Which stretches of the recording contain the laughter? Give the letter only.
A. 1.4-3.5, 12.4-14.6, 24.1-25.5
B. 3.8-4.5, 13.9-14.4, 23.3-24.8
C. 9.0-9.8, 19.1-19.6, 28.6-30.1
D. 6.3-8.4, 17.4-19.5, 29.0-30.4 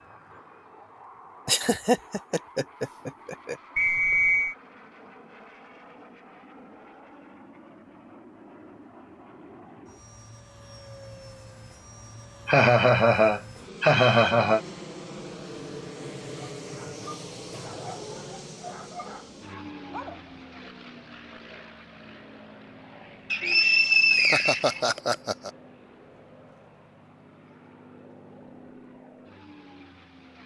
A.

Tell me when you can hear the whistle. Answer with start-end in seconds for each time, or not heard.
3.8-4.5, 13.9-14.4, 23.3-24.8.